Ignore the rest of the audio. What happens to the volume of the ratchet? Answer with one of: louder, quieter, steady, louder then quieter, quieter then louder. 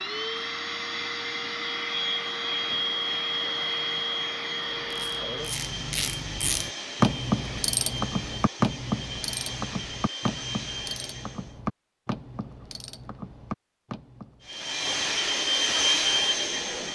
quieter.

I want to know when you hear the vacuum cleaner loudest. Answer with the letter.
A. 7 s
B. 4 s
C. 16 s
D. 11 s
C.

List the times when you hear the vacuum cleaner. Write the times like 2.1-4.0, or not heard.
0.0-11.6, 14.4-16.9.